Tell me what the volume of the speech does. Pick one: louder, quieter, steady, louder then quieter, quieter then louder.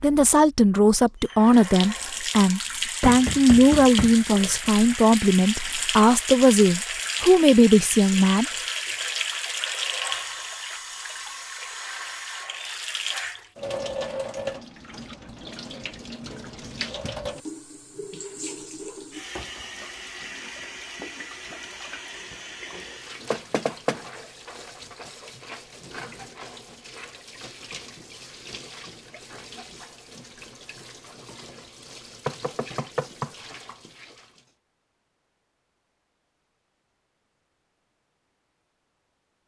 steady.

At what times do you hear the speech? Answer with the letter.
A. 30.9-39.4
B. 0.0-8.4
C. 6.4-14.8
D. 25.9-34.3
B.